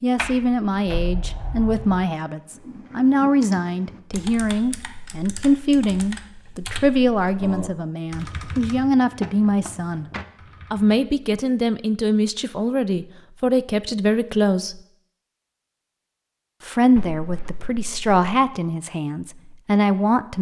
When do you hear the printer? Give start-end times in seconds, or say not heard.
not heard.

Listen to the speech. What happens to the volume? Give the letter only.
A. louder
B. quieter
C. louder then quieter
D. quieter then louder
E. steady
E.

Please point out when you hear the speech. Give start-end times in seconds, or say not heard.
0.0-10.1, 10.7-14.8, 16.6-20.3.